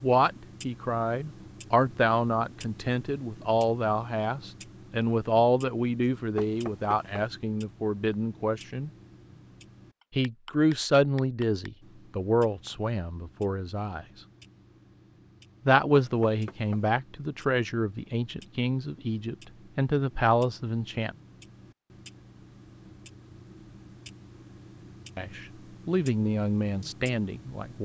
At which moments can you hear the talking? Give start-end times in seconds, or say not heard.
0.0-8.9, 10.2-14.1, 15.7-21.1, 25.1-27.7.